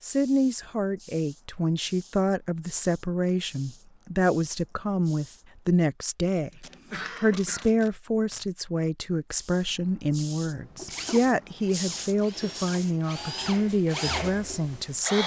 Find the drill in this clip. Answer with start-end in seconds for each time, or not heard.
10.8-15.2.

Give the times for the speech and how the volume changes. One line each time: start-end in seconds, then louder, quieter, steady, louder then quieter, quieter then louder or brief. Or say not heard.
0.0-15.2 steady.